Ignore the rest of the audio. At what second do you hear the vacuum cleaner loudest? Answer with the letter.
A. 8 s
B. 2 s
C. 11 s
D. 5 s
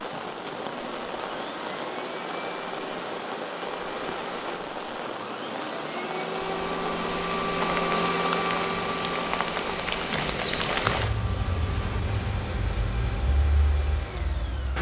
A.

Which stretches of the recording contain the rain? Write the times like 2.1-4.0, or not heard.
0.0-14.7.